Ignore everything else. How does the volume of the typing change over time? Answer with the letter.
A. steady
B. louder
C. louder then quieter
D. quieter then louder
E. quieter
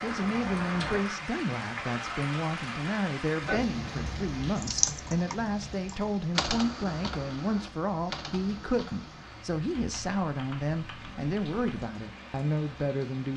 C.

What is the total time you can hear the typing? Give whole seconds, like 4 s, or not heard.
7 s.